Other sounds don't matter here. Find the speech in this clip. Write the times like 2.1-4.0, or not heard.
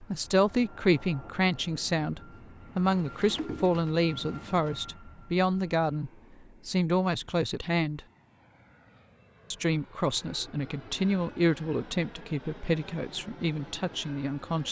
0.0-8.0, 9.5-14.6.